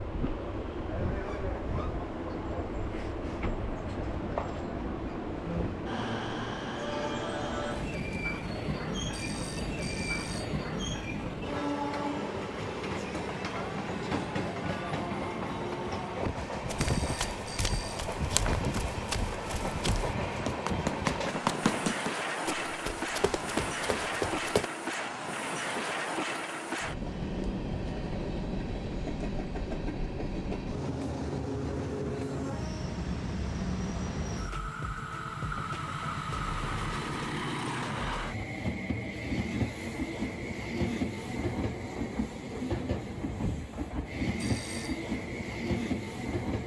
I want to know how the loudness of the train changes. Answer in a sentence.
The loudness of the train stays about the same.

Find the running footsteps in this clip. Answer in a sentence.
The running footsteps can be heard from 16.2 to 24.7 s.